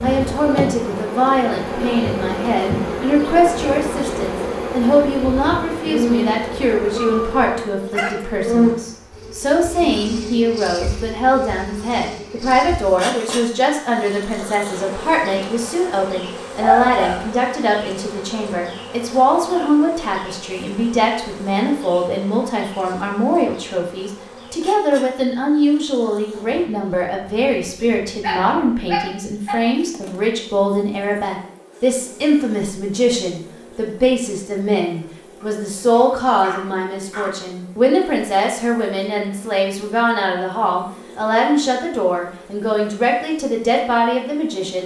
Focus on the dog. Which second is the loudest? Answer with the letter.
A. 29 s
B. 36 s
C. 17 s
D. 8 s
C.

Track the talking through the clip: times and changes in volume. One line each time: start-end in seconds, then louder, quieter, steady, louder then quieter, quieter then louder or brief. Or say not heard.
0.0-44.8 steady.